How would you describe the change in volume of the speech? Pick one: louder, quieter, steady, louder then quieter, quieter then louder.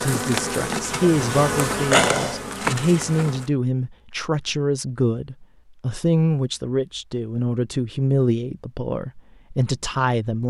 steady.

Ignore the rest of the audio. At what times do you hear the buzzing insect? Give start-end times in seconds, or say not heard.
0.0-3.5.